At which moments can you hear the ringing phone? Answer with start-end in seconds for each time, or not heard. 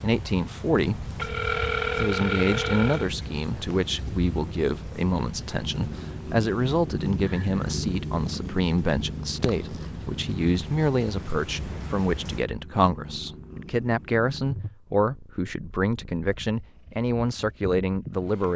1.1-3.1.